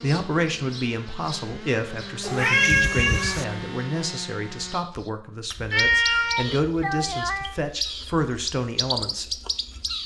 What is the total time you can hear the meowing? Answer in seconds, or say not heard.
3 s.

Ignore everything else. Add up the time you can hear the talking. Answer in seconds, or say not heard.
9 s.